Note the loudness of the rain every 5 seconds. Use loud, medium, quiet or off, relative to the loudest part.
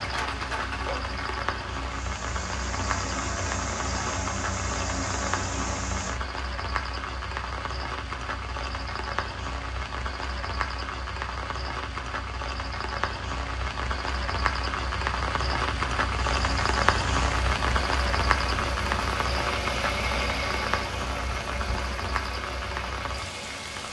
medium, medium, medium, loud, medium.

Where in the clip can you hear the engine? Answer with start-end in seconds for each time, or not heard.
0.0-6.2, 16.4-23.8.